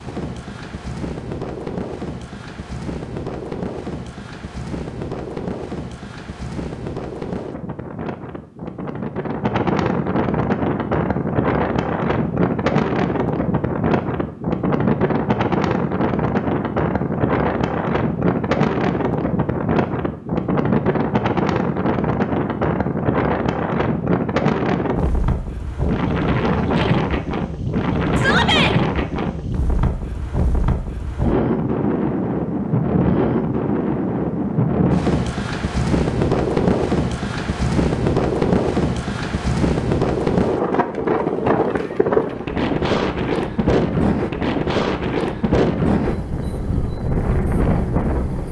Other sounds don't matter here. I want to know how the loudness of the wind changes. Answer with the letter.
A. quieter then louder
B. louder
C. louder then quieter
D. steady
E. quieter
B.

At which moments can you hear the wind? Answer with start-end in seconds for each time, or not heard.
0.0-48.4.